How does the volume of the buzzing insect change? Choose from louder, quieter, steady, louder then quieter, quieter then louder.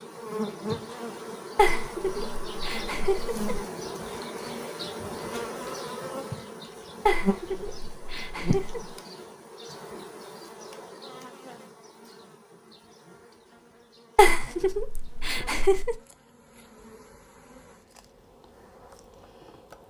quieter.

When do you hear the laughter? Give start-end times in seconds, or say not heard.
1.6-3.5, 7.0-8.9, 14.2-15.9.